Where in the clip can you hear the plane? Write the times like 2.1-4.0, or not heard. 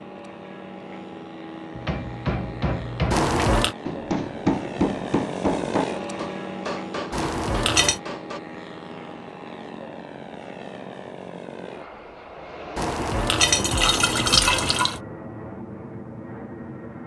0.0-17.0.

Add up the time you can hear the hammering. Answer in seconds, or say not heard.
7 s.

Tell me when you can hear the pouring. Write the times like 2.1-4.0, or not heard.
3.1-3.8, 7.1-8.0, 12.8-15.0.